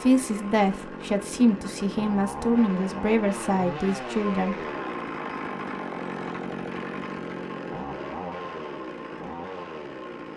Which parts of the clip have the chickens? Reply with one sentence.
The chickens can't be heard in this clip.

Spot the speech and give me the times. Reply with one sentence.
The speech can be heard from 0.0 to 4.5 s.